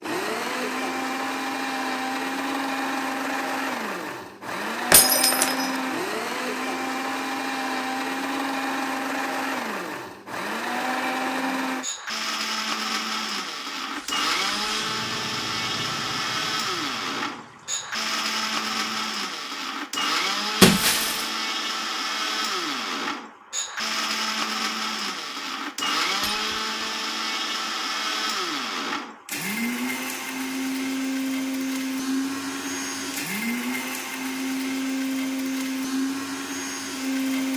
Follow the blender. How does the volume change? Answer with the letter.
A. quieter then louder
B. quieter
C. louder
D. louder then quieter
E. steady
E.